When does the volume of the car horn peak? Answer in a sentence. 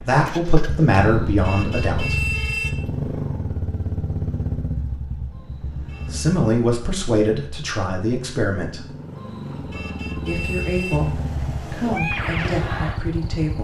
The loudest moment of the car horn is at 2 seconds.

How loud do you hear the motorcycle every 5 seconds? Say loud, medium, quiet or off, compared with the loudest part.
loud, medium, loud.